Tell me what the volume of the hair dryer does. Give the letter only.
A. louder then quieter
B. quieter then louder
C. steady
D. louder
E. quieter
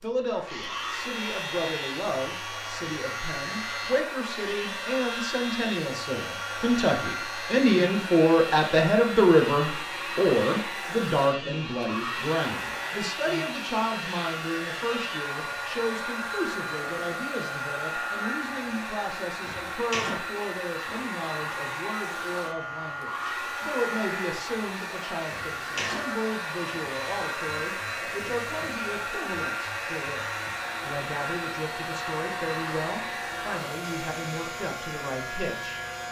C.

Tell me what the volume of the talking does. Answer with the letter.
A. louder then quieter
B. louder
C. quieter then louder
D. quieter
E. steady
A.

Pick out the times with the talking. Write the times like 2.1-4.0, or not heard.
0.0-35.8.